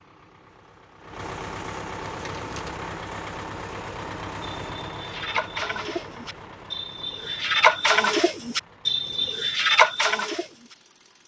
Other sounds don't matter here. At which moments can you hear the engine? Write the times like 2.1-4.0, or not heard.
0.0-11.2.